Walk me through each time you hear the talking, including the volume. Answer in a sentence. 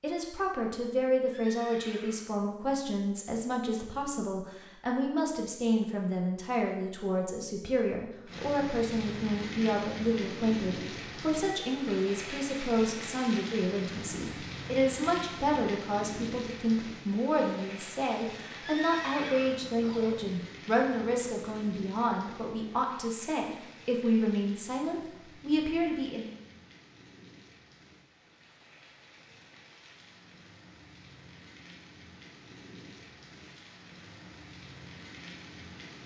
You can hear the talking from 0.0 to 26.3 s, at a steady volume.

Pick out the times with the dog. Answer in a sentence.
You can't hear the dog here.